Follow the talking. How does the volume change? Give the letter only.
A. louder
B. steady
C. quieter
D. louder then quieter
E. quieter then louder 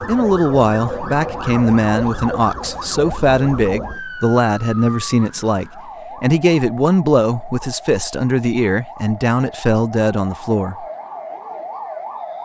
B.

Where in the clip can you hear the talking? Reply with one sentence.
The talking can be heard from 0.0 to 10.8 s.